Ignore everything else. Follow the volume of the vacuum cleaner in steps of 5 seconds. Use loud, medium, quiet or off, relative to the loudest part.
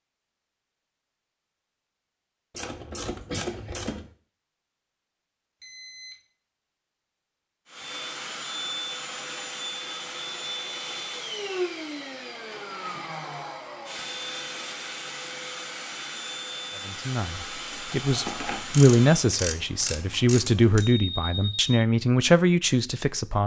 off, loud, loud, loud, off.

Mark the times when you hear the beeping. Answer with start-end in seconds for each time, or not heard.
5.6-6.2, 20.8-21.8.